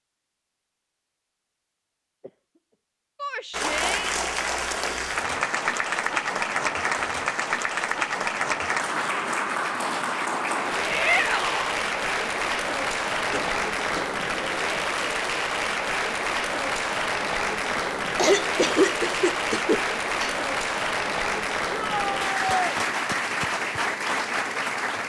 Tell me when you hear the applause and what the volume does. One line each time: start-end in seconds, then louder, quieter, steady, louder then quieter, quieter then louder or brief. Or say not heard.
3.5-25.0 steady.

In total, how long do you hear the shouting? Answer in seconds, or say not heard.
3 s.